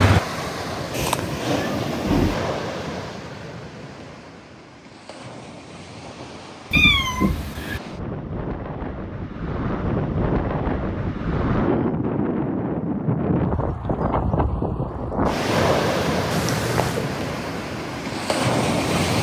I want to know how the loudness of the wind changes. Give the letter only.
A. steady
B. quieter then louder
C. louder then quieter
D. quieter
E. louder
B.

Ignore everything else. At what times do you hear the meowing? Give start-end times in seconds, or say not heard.
0.9-2.4, 6.7-7.8, 16.3-17.1.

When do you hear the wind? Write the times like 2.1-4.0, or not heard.
0.0-19.1.